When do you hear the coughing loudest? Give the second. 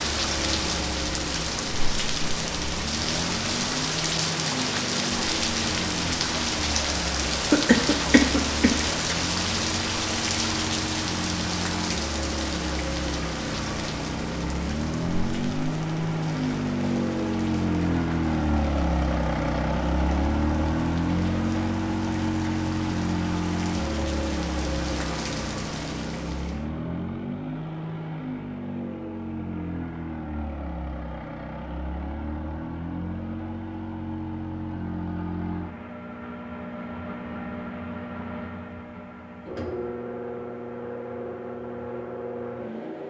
8 s.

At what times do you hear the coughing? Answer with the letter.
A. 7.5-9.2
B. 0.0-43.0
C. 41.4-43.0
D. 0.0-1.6
A.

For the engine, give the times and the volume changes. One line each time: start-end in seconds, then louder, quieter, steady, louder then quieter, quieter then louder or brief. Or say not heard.
0.0-43.0 louder then quieter.